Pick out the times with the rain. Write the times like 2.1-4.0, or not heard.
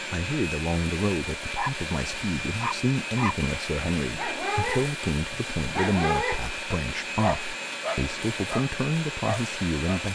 not heard.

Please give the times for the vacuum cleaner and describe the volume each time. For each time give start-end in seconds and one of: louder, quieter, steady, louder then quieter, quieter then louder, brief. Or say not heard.
0.0-10.1 steady.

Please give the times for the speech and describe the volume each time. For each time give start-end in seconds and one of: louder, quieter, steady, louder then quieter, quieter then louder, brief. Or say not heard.
0.1-10.1 steady.